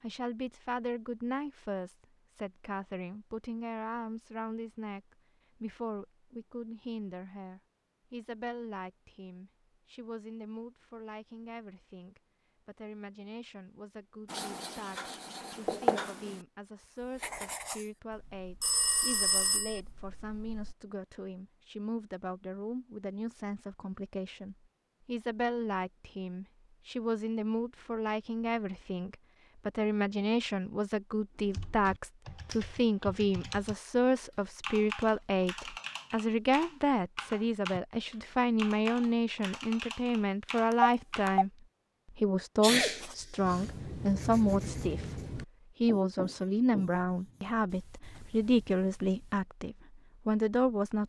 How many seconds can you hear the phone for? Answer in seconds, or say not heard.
2 s.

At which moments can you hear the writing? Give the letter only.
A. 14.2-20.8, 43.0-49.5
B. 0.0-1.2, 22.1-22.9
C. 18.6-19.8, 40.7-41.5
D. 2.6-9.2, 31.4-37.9
A.